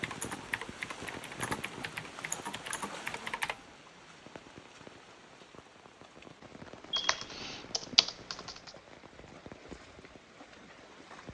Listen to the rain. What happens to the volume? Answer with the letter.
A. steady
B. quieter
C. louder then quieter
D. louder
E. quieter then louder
B.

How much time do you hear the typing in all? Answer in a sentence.
You can hear the typing for 5 seconds altogether.